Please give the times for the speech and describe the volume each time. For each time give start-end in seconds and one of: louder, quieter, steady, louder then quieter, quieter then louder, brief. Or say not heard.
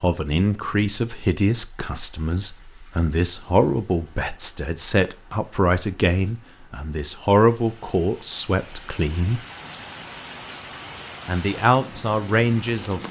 0.0-9.4 steady
11.2-13.0 brief.